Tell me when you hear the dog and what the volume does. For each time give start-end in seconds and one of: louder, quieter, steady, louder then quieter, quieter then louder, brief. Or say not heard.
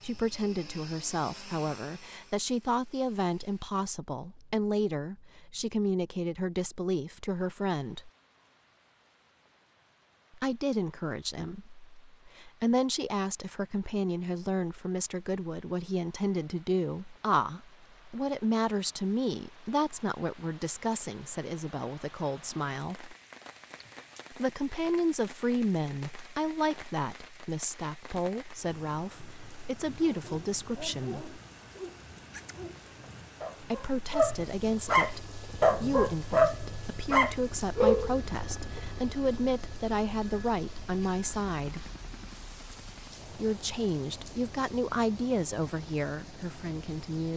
29.9-38.8 louder.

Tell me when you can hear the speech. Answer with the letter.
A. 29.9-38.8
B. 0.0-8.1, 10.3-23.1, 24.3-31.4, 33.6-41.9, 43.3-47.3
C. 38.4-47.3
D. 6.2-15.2
B.